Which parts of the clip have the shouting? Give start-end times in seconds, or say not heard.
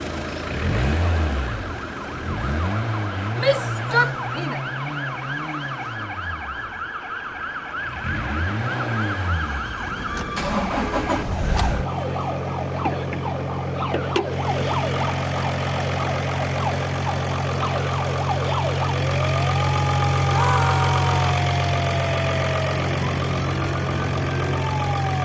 3.4-4.6, 20.2-21.4.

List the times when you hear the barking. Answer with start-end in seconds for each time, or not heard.
not heard.